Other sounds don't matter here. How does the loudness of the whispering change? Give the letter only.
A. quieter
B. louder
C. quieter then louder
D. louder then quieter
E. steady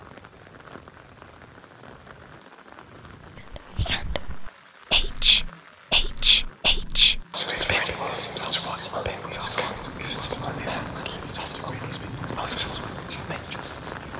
A.